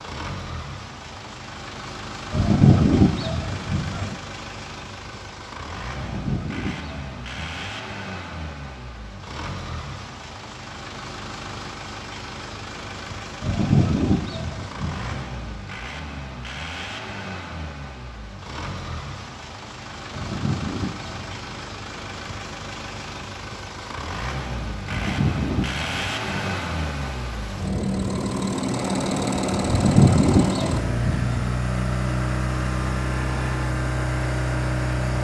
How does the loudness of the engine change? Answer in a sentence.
The volume of the engine goes up.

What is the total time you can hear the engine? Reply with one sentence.
The engine can be heard for 35 seconds in total.